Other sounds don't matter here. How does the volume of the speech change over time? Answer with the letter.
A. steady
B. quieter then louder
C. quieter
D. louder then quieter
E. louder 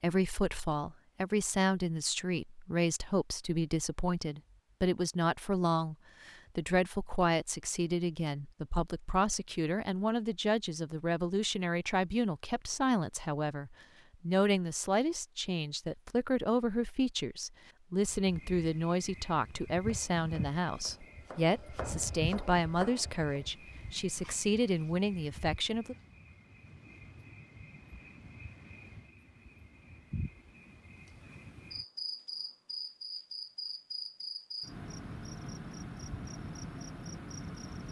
A.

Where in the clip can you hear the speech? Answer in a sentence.
The speech can be heard from 0.0 to 25.9 s.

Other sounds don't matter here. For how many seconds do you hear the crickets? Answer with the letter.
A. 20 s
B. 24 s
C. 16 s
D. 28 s
A.